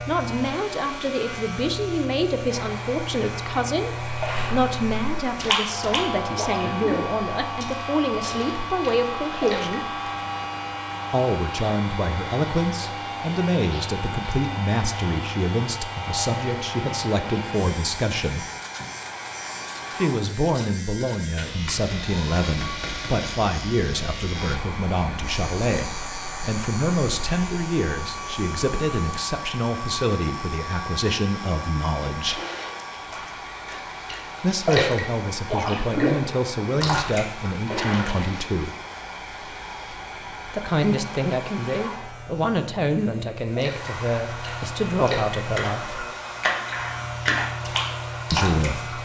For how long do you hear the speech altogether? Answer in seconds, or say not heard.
40 s.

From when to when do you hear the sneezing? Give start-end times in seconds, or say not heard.
not heard.